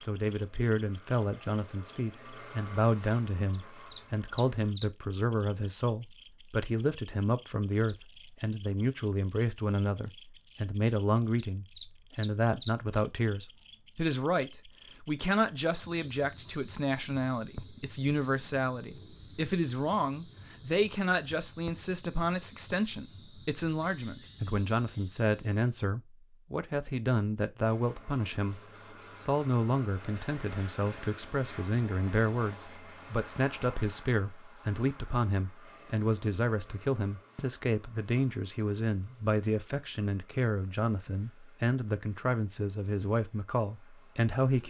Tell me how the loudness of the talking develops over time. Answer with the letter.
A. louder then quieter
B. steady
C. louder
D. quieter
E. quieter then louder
B.